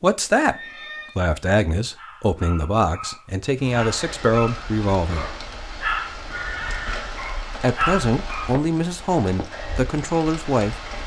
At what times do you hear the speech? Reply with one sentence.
You can hear the speech from 0.0 to 5.4 s and from 7.6 to 10.9 s.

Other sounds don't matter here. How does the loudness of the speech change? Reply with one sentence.
The volume of the speech stays about the same.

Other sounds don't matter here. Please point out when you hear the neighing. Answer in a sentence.
You can hear the neighing from 0.5 to 1.2 s and from 6.2 to 7.2 s.